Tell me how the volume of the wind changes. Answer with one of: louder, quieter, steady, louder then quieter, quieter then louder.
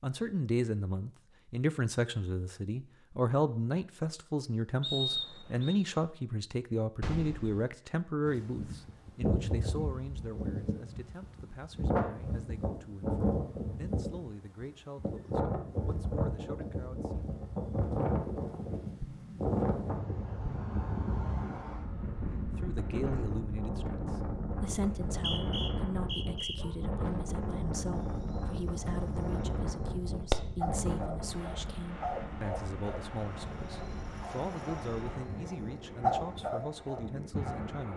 quieter.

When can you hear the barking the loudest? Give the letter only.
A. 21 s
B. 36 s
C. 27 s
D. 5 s
B.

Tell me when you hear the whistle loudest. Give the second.
5 s.